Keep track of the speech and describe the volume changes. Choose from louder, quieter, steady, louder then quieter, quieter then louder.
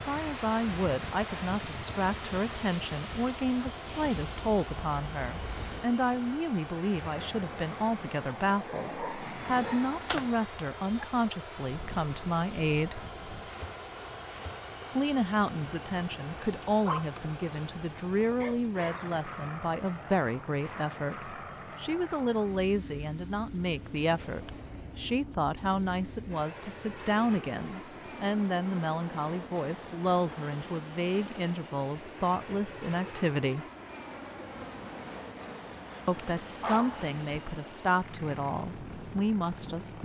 steady.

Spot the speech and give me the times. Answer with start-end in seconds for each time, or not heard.
0.0-13.0, 14.9-33.6, 36.0-40.0.